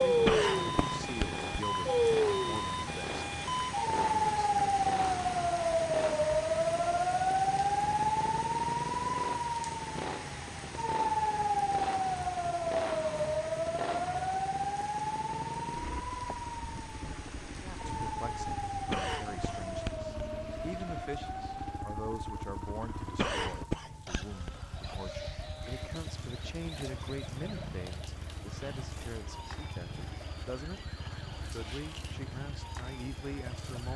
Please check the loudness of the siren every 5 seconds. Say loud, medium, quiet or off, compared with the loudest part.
loud, loud, loud, medium, quiet, quiet, quiet.